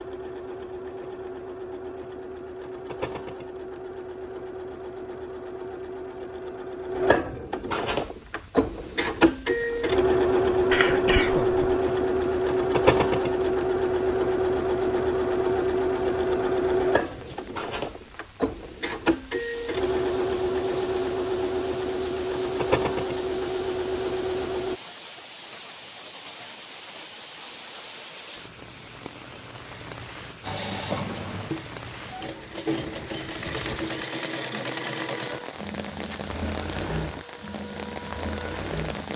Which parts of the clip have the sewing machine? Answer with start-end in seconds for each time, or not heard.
0.0-24.8, 30.4-39.1.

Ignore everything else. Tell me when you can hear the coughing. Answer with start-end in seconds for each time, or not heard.
10.7-11.7.